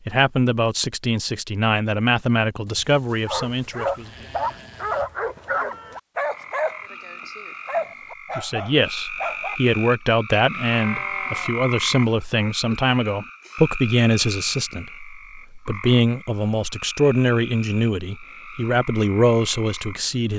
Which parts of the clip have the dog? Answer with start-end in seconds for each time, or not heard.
3.2-9.6.